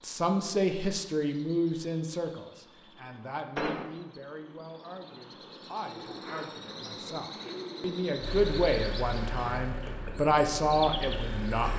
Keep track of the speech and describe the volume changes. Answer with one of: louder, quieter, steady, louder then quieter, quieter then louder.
quieter then louder.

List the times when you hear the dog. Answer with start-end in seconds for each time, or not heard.
not heard.